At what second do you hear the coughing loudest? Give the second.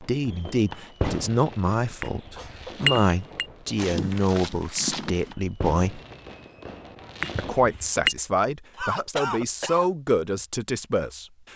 9 s.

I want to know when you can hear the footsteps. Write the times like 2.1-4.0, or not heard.
3.8-5.3.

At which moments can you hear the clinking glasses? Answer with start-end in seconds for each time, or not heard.
2.0-3.5, 7.2-8.2.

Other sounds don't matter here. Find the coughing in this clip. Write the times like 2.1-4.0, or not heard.
1.8-2.9, 8.8-9.9.